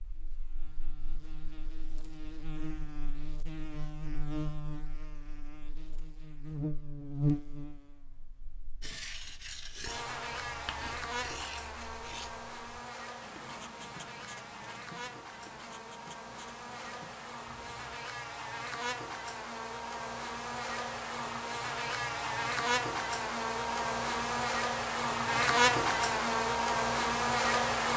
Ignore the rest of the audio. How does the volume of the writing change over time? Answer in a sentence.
The volume of the writing goes down.